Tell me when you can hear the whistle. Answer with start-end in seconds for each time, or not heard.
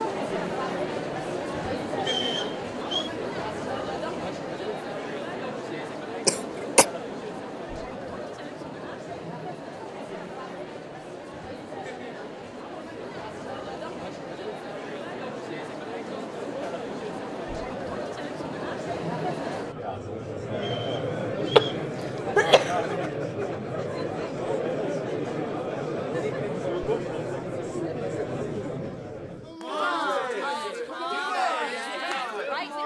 1.9-3.1, 20.6-21.9.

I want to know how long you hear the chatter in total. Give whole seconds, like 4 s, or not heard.
33 s.